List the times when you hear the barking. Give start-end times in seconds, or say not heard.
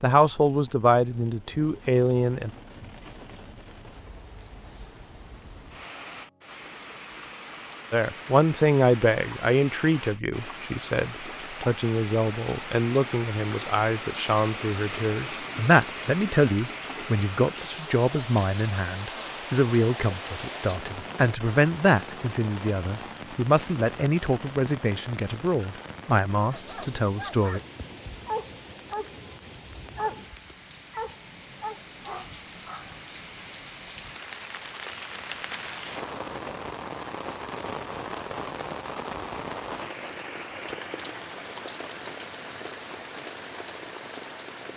26.4-33.0.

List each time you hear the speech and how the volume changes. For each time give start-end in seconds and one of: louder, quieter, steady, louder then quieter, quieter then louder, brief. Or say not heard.
0.0-2.5 brief
7.9-27.6 steady.